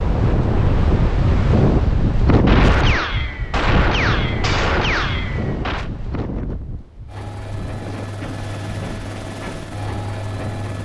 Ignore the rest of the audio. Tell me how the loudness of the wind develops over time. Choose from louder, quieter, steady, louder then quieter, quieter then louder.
quieter.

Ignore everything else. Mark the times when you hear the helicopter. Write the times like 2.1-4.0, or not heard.
7.0-10.8.